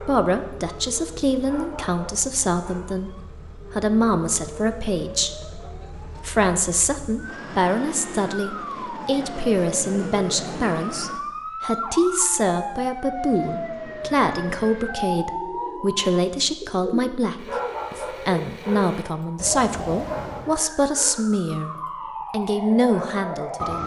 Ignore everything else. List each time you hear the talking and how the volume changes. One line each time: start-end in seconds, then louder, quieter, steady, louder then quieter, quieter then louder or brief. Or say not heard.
0.0-21.7 steady
22.3-23.8 brief.